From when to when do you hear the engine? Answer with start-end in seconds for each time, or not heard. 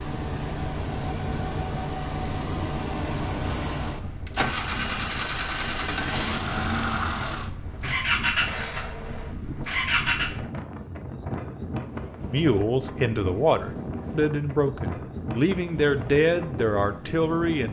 0.0-10.4.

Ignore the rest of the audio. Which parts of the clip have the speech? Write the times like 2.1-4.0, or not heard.
12.3-17.6.